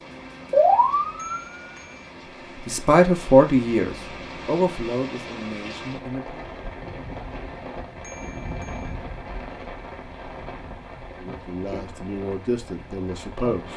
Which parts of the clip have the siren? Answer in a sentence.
You can hear the siren from 0.0 to 1.7 s.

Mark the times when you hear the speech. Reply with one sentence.
The speech can be heard from 2.5 to 6.5 s and from 11.2 to 13.7 s.